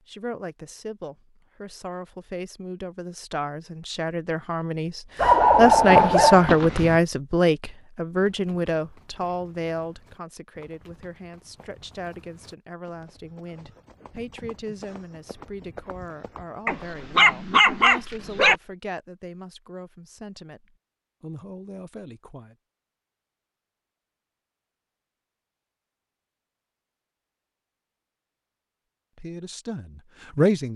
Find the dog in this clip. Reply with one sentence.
The dog can be heard from 5.2 to 7.0 s and from 16.6 to 18.6 s.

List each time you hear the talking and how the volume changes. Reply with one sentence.
The talking can be heard from 0.1 to 22.6 s, getting louder then quieter; and briefly from 29.1 to 30.7 s.